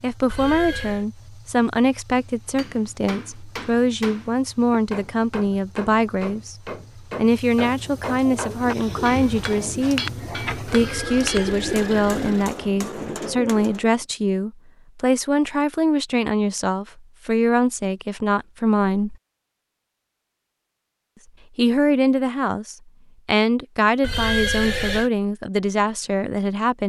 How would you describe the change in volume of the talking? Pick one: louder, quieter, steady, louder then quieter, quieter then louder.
steady.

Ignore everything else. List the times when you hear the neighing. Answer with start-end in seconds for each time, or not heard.
0.3-1.1, 10.8-12.5, 24.0-25.1.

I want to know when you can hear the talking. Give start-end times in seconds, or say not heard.
0.0-19.1, 21.6-26.8.